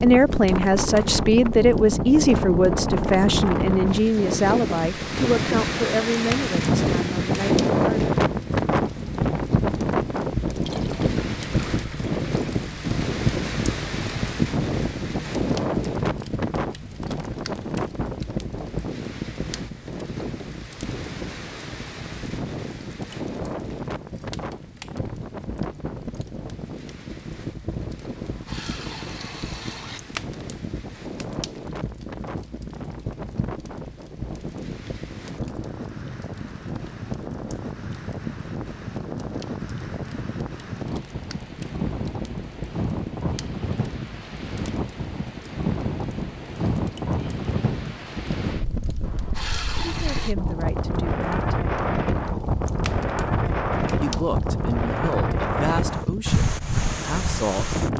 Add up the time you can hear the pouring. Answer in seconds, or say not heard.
5 s.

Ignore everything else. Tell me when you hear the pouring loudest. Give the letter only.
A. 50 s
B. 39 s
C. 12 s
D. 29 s
A.